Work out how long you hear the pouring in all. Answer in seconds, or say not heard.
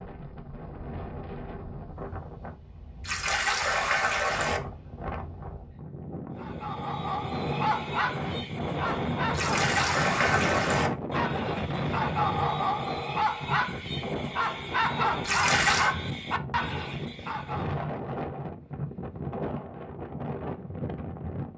4 s.